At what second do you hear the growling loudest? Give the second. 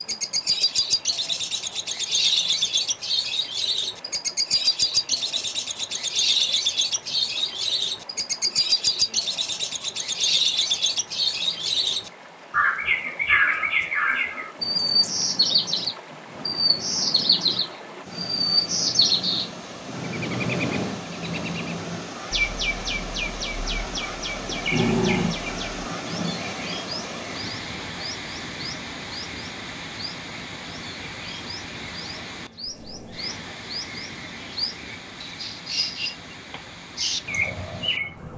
25 s.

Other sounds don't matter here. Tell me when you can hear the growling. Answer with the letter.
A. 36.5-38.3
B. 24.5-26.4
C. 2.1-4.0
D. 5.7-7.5
B.